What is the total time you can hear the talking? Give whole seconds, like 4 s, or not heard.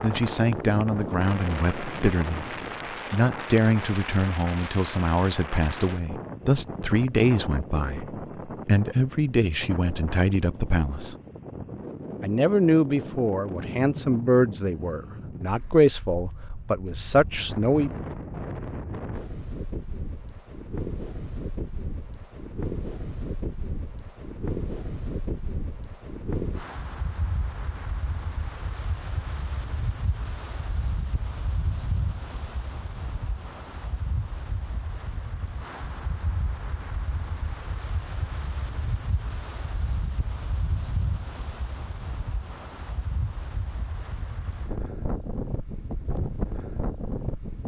17 s.